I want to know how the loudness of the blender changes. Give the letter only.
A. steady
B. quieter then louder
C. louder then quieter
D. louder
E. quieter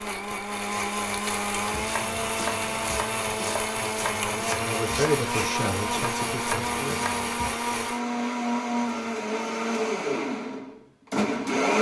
A.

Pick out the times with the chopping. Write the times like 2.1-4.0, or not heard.
1.6-7.5.